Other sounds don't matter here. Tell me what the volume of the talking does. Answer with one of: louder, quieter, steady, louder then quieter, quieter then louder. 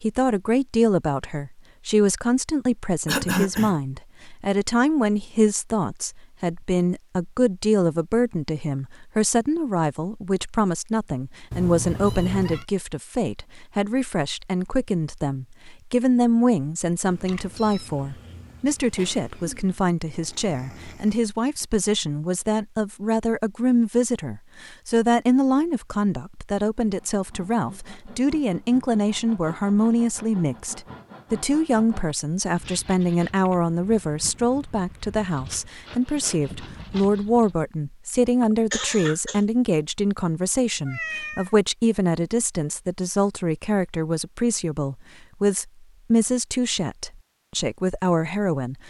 steady.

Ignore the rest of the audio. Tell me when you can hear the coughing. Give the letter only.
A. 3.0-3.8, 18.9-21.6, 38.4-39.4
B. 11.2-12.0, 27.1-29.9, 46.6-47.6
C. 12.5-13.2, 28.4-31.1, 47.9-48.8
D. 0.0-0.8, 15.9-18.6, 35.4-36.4
A.